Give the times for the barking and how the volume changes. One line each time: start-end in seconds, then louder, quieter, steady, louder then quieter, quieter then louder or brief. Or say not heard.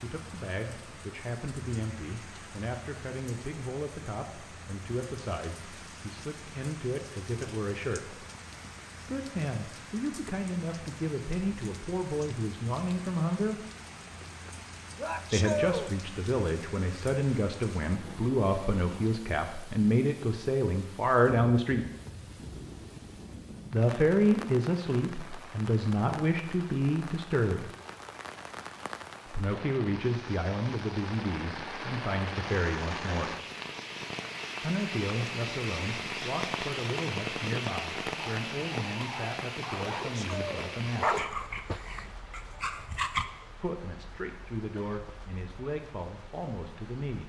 38.1-43.3 louder then quieter.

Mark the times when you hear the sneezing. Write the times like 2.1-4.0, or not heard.
14.9-15.9, 40.0-40.8.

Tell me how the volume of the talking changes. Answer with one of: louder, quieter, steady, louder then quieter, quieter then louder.
louder then quieter.